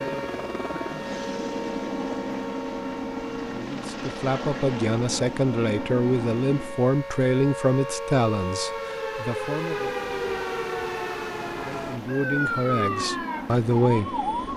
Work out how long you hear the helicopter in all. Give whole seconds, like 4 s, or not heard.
12 s.